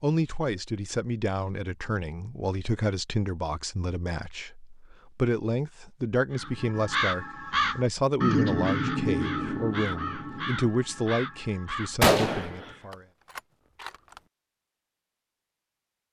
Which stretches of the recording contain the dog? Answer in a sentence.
You can't hear the dog here.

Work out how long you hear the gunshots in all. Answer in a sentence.
The gunshots can be heard for 2 seconds in total.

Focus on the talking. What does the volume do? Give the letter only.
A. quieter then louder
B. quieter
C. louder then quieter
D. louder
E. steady
E.